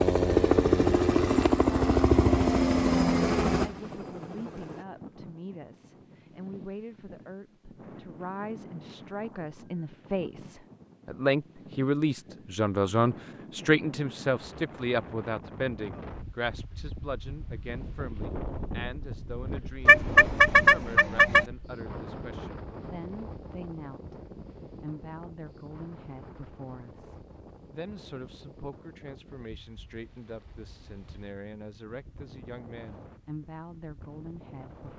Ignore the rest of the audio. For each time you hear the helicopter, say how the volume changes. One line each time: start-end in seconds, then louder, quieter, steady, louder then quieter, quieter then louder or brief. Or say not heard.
0.0-4.8 quieter.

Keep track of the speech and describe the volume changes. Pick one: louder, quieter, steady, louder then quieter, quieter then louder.
louder then quieter.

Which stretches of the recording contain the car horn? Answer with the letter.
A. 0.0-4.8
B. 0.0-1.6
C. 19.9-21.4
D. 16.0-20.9
C.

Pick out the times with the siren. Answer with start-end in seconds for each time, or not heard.
not heard.